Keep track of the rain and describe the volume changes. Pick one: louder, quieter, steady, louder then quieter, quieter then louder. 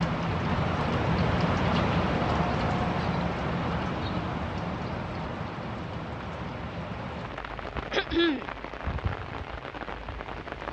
quieter.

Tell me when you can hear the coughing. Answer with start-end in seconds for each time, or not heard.
7.9-8.4.